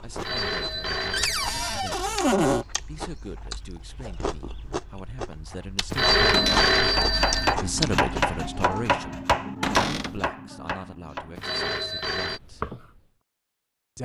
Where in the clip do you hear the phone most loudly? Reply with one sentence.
The loudest moment of the phone is at 6 seconds.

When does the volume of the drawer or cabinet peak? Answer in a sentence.
The loudest moment of the drawer or cabinet is at 2 seconds.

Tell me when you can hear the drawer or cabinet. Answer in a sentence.
The drawer or cabinet can be heard from 1.1 to 2.6 s, from 6.3 to 6.8 s and from 9.6 to 10.2 s.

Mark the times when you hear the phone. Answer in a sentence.
The phone can be heard from 0.1 to 2.0 s, from 5.9 to 7.5 s and from 11.3 to 12.4 s.